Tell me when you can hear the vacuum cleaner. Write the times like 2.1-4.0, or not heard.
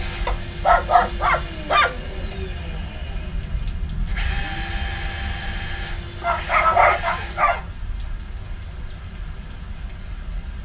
0.0-7.5.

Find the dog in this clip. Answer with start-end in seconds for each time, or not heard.
0.2-2.2, 6.2-7.6.